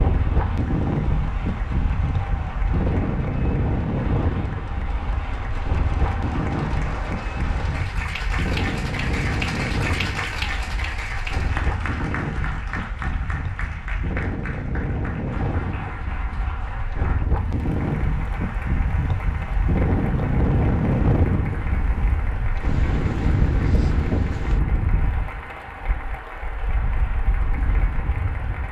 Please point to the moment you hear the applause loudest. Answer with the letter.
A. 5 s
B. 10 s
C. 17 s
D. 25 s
B.